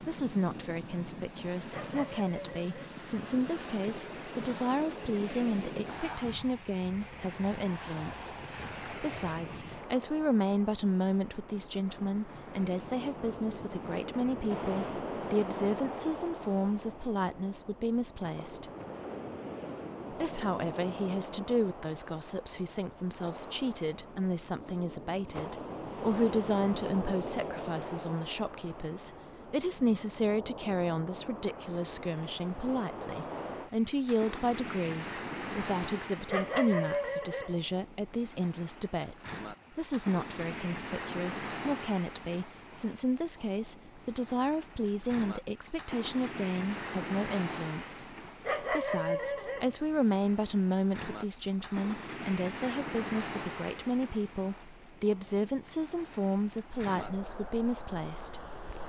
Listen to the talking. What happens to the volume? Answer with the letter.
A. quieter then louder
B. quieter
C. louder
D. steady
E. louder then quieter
D.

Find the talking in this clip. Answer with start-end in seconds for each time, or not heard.
0.1-18.7, 20.1-58.4.